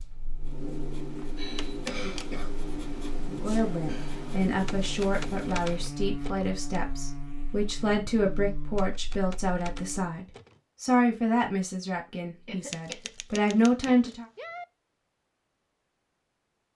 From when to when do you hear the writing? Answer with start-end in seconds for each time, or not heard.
0.4-6.0.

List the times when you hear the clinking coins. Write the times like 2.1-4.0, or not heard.
not heard.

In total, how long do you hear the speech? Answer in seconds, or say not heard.
11 s.